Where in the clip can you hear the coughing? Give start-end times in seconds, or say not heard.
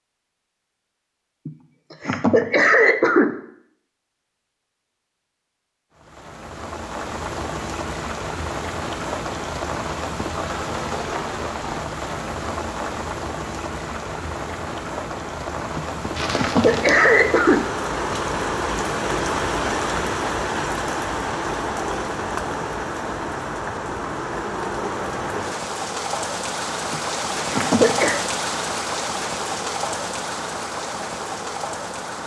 1.4-3.4, 15.8-17.6, 26.9-28.2.